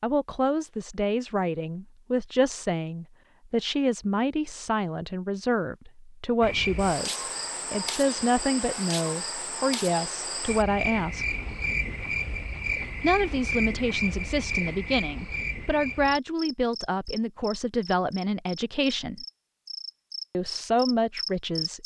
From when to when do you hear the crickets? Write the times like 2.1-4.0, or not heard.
6.4-21.8.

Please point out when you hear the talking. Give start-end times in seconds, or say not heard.
0.0-11.3, 13.0-19.2, 20.3-21.8.